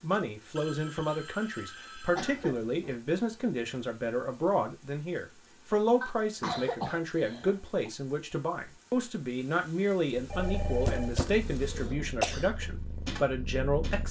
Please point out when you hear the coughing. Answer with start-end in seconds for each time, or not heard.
2.1-3.0, 6.0-7.9, 10.8-12.4.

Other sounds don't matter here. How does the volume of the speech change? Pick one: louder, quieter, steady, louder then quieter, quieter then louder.
steady.